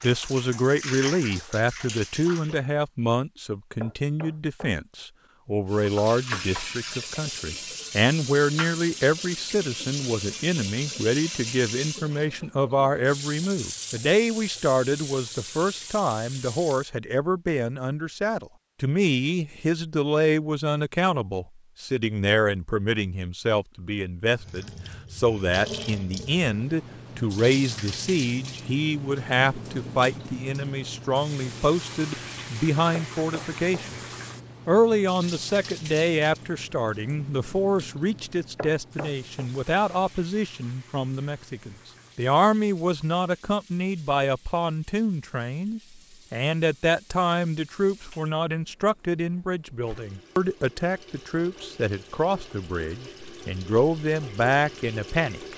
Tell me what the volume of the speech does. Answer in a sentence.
The volume of the speech stays about the same.